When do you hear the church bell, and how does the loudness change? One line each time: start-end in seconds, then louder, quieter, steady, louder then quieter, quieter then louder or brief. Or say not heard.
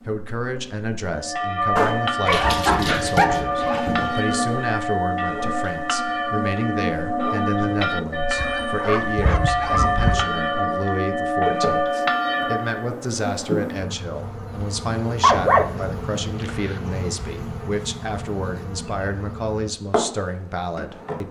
1.1-12.9 steady.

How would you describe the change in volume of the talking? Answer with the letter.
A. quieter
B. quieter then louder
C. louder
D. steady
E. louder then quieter
D.